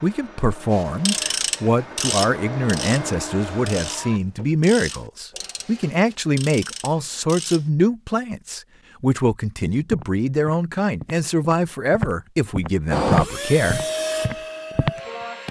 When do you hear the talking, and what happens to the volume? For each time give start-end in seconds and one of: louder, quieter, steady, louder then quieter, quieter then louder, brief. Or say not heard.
0.0-13.8 steady.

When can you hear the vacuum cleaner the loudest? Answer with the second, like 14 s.
13 s.